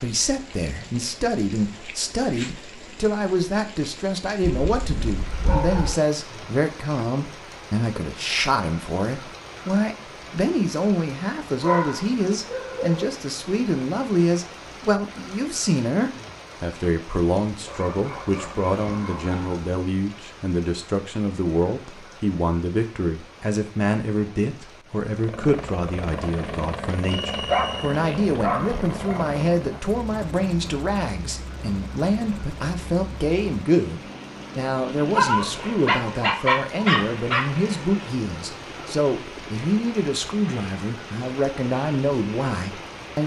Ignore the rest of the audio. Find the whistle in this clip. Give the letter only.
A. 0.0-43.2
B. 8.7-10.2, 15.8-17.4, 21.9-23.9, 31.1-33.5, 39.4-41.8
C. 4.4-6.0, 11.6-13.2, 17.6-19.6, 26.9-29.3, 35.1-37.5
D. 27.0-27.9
D.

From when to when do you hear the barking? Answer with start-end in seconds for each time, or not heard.
4.4-6.0, 11.6-13.2, 17.6-19.6, 26.9-29.3, 35.1-37.5.